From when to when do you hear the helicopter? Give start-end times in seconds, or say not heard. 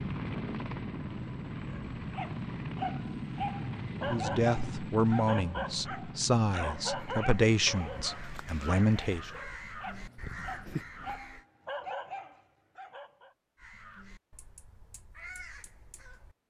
0.0-10.8.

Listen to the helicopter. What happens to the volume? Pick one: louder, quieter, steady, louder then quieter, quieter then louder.
quieter.